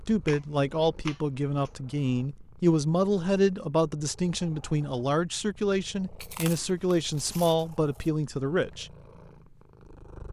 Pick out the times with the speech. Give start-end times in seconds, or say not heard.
0.0-8.9.